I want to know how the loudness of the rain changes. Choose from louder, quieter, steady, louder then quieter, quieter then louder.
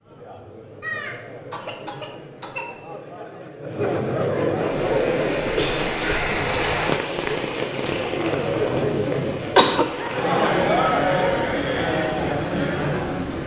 quieter.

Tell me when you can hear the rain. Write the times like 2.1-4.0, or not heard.
4.7-13.4.